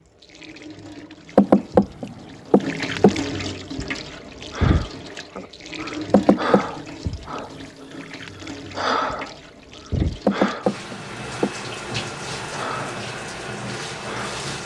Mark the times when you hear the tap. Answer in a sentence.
You can hear the tap from 0.0 to 14.6 s.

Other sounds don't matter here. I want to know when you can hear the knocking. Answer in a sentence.
You can hear the knocking from 1.4 to 3.1 s, from 6.1 to 6.7 s and from 10.2 to 11.5 s.